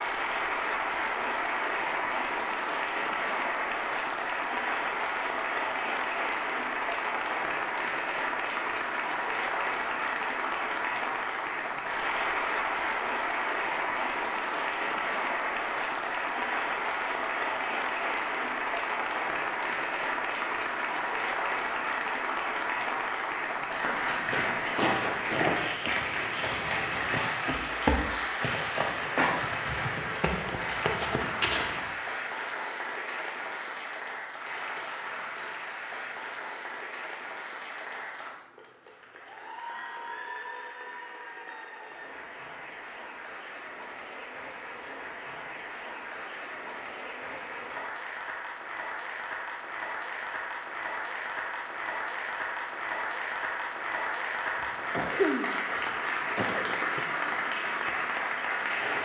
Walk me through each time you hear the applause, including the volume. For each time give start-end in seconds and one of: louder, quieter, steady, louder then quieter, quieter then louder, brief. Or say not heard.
0.0-59.0 quieter then louder.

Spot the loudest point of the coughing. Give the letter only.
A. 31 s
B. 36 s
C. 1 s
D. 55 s
D.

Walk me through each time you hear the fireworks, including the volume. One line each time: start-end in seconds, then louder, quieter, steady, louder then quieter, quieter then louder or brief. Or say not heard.
not heard.